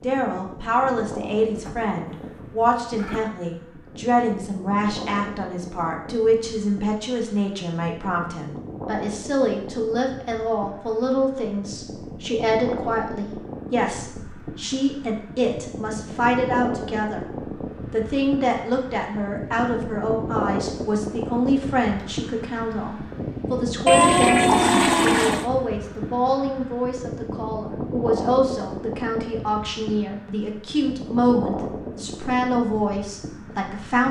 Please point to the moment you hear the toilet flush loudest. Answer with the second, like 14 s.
24 s.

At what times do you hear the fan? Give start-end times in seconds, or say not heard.
0.0-34.0.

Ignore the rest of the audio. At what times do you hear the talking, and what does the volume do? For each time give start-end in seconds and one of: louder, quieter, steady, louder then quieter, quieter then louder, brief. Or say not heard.
0.0-17.3 steady
17.9-34.0 steady.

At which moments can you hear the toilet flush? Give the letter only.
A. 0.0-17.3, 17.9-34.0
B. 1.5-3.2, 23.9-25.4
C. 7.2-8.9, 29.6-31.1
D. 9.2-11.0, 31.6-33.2
B.